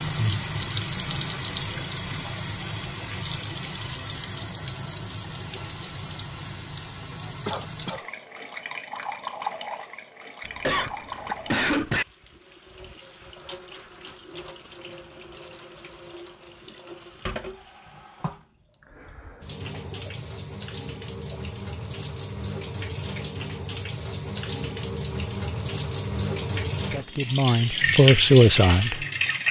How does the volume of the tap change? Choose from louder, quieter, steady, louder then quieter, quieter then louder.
quieter then louder.